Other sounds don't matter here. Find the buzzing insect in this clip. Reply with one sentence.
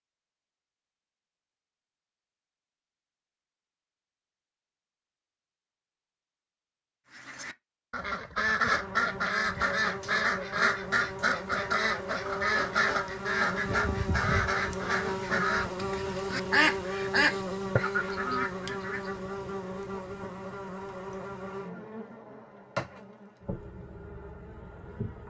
The buzzing insect can be heard from 8.7 to 25.2 s.